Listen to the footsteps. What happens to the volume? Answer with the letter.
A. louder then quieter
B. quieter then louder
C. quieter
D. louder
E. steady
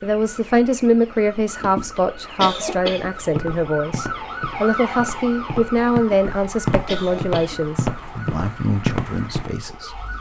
D.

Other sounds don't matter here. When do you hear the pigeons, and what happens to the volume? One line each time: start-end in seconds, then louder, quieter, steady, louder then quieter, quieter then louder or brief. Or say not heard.
not heard.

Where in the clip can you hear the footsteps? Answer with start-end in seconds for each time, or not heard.
3.1-9.5.